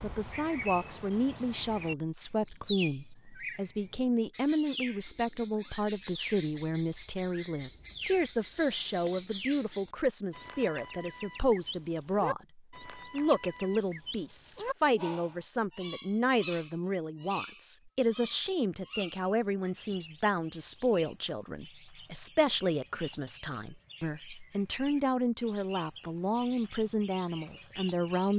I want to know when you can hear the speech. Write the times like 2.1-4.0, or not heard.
0.0-28.3.